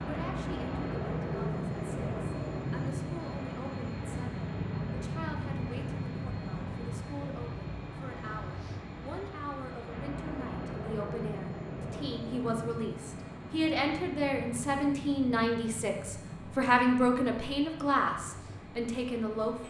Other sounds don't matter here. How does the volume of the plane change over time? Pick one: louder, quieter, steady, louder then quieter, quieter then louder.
quieter.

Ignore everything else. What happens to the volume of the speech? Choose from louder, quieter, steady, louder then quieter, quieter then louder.
louder.